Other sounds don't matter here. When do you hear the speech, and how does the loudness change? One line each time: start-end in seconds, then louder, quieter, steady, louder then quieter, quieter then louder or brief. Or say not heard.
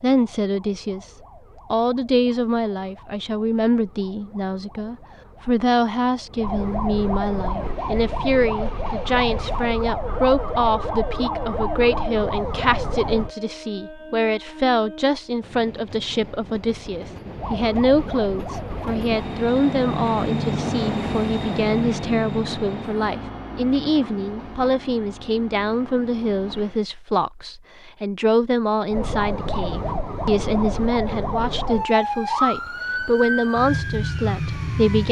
0.0-1.1 brief
1.7-35.0 steady.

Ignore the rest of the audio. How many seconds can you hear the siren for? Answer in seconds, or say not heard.
21 s.